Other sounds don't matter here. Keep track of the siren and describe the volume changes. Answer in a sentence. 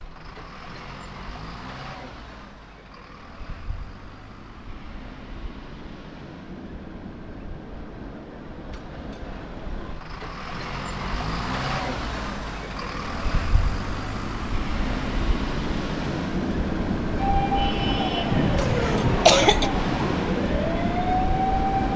The loudness of the siren stays about the same.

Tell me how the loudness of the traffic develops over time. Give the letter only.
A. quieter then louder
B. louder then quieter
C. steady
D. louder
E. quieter
D.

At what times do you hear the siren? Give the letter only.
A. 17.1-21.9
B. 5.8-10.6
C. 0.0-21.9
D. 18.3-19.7
A.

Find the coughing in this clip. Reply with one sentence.
You can hear the coughing from 18.3 to 19.7 s.